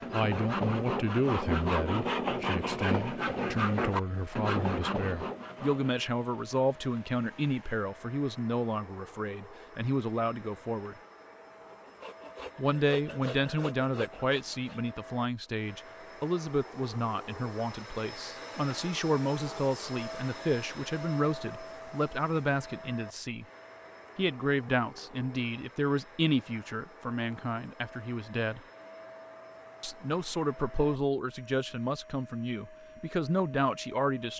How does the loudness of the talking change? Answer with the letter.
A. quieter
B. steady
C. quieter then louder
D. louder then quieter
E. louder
B.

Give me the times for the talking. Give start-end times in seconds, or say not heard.
0.1-10.9, 12.6-23.4, 24.1-28.6, 29.8-34.3.